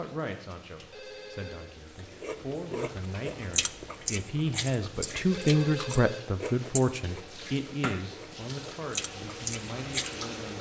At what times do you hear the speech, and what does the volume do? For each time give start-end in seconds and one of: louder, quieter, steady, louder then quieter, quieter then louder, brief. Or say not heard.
0.0-10.5 louder then quieter.